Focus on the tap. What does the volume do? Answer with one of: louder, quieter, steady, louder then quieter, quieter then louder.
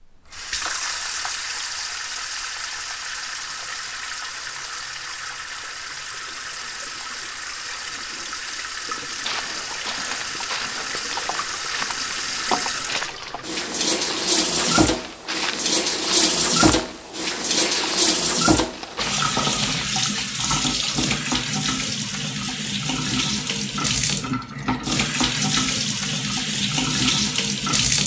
louder.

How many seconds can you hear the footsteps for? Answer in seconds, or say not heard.
11 s.